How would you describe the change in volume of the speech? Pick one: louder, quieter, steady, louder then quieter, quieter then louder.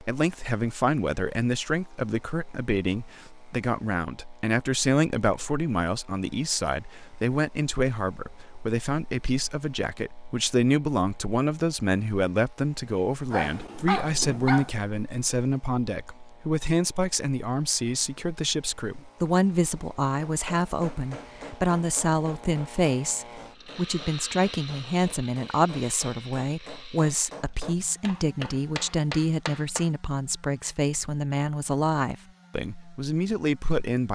steady.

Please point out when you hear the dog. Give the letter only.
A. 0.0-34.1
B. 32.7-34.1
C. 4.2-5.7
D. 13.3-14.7
D.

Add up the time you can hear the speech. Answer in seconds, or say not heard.
34 s.